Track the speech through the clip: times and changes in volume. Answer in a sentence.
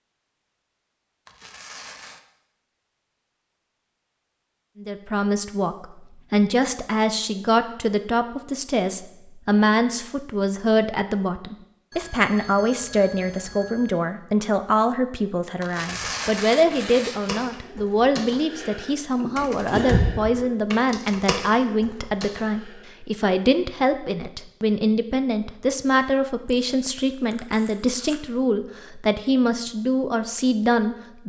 The speech can be heard from 4.8 to 31.2 s, at a steady volume.